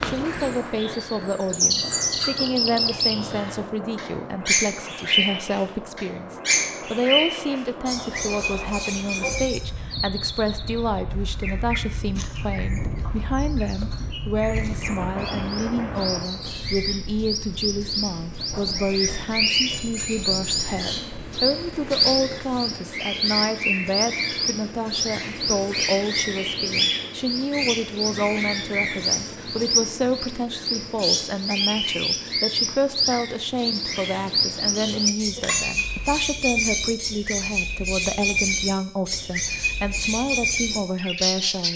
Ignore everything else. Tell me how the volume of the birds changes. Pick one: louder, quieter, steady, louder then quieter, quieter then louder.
quieter then louder.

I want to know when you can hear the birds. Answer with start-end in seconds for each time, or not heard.
0.0-41.7.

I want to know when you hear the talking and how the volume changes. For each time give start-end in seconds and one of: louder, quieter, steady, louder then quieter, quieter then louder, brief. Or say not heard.
0.0-41.7 steady.